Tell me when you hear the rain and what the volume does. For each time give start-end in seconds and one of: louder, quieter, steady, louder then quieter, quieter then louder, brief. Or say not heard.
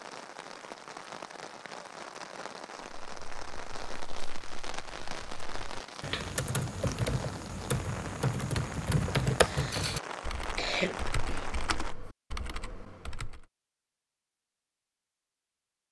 0.0-11.9 steady.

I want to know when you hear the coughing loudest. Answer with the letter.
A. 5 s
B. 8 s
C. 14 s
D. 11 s
D.